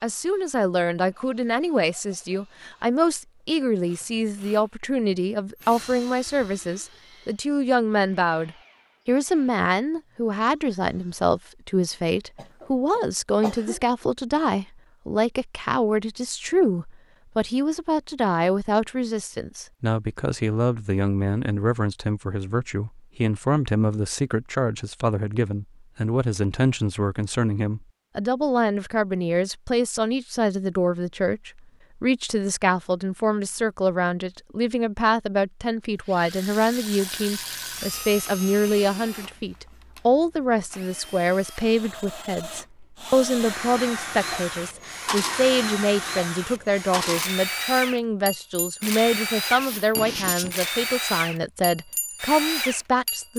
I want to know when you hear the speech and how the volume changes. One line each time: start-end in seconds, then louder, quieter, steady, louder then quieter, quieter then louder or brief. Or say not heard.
0.0-53.3 steady.